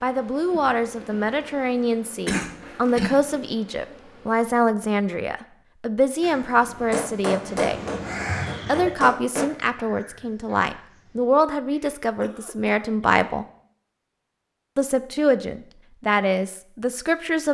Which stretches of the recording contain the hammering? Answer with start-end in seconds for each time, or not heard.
6.9-9.5.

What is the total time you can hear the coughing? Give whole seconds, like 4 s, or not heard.
3 s.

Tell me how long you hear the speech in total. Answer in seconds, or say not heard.
15 s.